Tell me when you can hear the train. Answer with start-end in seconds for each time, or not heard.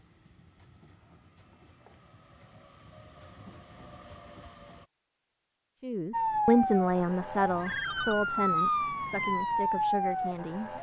0.0-4.9.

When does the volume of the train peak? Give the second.
4 s.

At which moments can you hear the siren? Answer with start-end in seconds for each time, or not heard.
6.1-10.7.